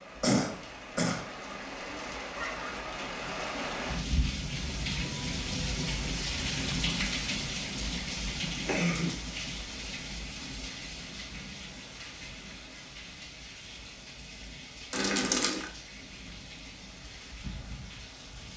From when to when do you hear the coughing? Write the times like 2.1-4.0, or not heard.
0.2-1.2, 8.7-9.2, 14.9-15.6.